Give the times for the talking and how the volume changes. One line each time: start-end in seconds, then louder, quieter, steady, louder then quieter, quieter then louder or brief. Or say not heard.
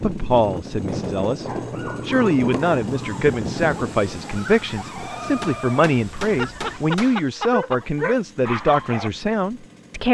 0.0-1.4 brief
2.0-10.0 steady.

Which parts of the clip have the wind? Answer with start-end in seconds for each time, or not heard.
0.0-6.8.